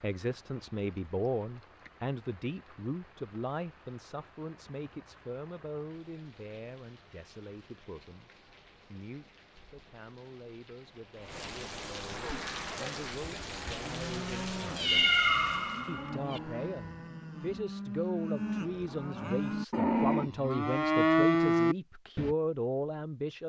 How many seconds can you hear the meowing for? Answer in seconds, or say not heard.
2 s.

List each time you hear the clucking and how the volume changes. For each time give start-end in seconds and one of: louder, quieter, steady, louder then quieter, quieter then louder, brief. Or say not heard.
not heard.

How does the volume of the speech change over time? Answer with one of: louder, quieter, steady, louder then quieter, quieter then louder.
quieter then louder.